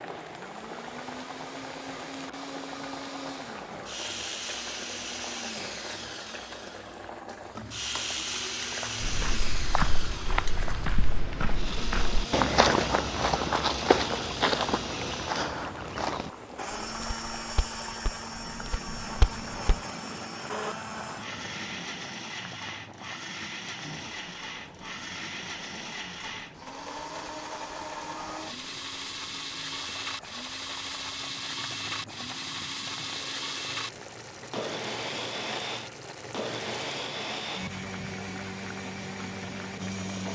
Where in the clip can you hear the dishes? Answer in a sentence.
The dishes can't be heard in this clip.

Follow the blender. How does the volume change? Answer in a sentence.
The loudness of the blender stays about the same.